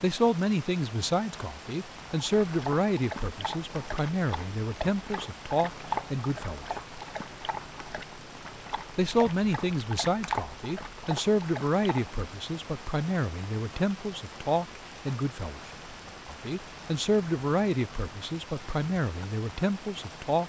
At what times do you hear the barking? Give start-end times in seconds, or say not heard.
2.1-12.2.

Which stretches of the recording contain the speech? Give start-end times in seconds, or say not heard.
0.0-6.8, 8.9-20.4.